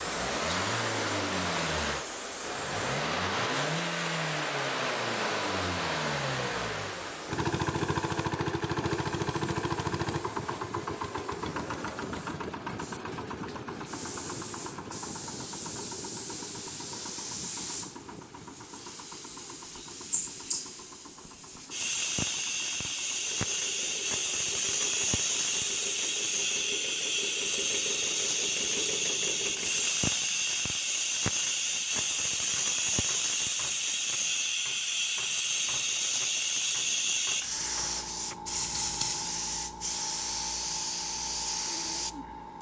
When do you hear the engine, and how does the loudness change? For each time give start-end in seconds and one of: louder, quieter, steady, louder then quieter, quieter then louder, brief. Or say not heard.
0.0-30.0 quieter then louder.